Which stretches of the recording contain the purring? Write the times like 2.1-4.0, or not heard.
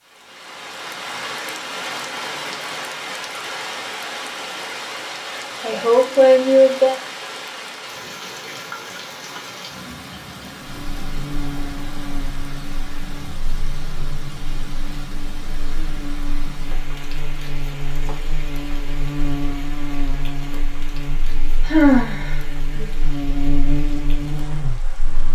not heard.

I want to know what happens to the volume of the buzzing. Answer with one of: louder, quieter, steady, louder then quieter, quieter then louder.
louder.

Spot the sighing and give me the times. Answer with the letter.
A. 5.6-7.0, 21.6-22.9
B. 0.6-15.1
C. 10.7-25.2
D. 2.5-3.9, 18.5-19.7
A.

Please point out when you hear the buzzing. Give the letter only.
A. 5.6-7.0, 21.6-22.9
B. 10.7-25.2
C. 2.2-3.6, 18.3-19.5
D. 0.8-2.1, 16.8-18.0
B.